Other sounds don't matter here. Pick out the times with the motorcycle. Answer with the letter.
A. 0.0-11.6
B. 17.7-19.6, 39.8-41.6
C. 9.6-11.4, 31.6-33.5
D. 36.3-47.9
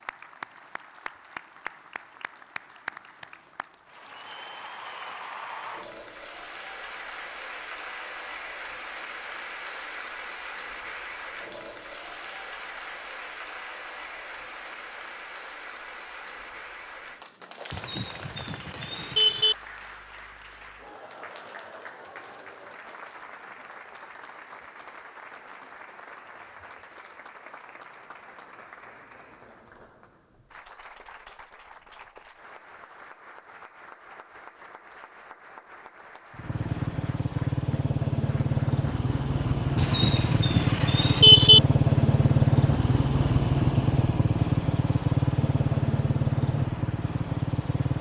D.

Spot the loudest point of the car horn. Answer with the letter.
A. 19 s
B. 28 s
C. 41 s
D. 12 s
C.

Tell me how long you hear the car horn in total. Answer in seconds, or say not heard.
4 s.